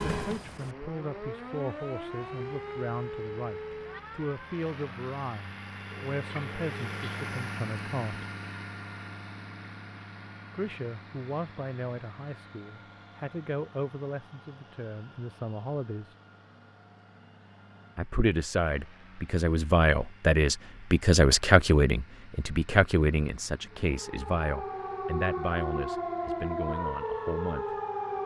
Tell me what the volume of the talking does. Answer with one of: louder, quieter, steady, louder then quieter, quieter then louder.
louder then quieter.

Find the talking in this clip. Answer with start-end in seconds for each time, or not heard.
0.0-8.2, 10.5-16.1, 17.9-27.8.